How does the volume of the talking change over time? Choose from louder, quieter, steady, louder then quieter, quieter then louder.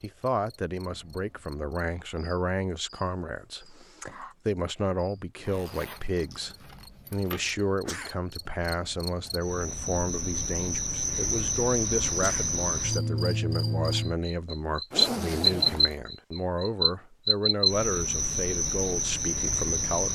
steady.